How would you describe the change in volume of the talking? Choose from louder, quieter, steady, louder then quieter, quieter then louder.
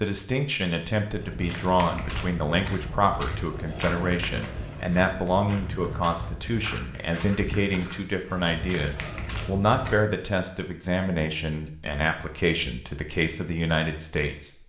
steady.